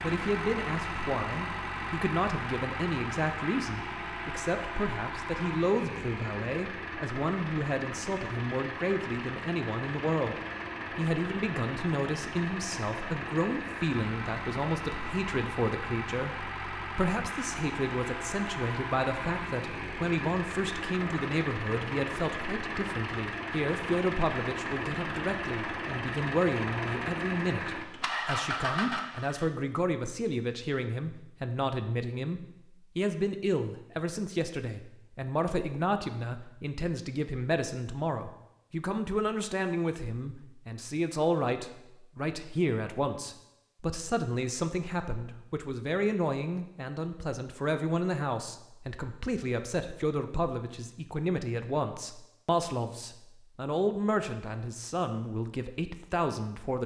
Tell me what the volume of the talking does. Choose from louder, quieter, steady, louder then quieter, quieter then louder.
steady.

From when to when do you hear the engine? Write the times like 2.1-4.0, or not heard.
0.0-29.5.